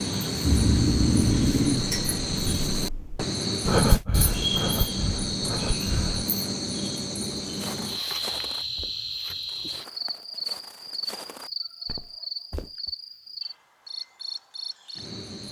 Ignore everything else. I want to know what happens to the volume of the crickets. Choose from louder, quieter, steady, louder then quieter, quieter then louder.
quieter.